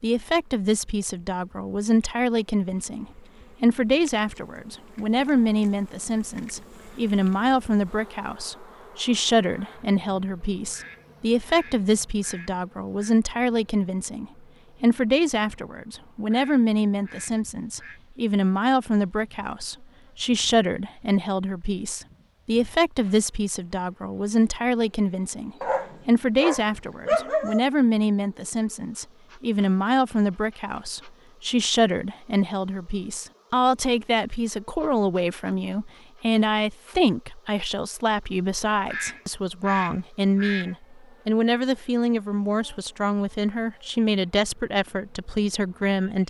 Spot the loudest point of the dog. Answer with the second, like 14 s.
27 s.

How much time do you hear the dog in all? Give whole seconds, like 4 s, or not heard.
2 s.